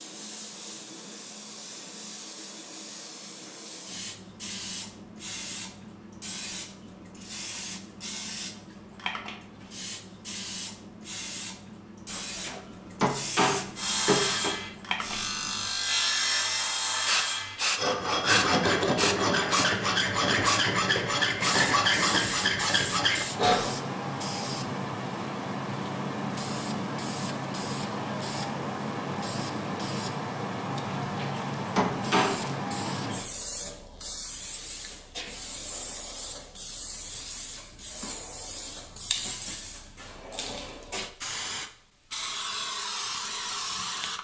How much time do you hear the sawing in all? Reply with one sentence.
You can hear the sawing for 10 seconds altogether.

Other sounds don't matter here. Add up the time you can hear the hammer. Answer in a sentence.
The hammer can be heard for 4 seconds in total.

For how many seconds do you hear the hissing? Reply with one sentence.
You can hear the hissing for 44 seconds altogether.